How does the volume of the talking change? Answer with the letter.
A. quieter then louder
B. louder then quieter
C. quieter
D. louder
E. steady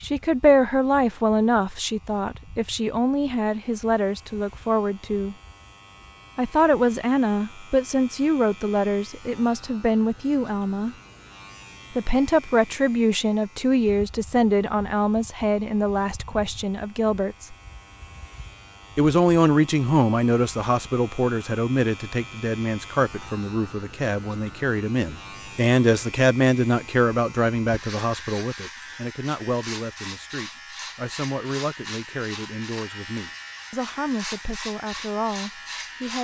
C.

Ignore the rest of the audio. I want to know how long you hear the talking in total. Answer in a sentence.
The talking can be heard for 33 seconds in total.